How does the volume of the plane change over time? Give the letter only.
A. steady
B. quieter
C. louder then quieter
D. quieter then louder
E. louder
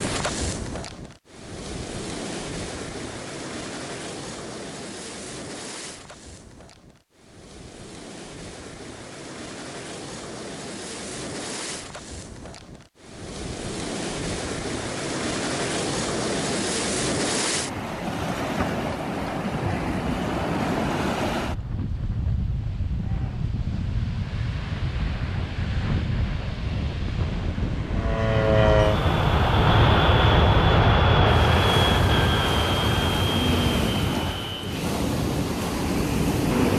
B.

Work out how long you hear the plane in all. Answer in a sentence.
You can hear the plane for 9 seconds altogether.